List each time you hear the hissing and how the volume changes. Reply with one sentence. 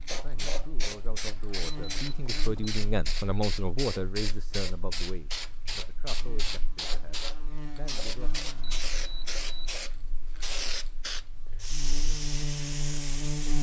The hissing can be heard from 0.0 to 13.5 s, at a steady volume.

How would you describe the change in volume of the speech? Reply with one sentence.
The volume of the speech goes up, then down.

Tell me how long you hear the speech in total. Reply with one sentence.
The speech can be heard for 8 seconds in total.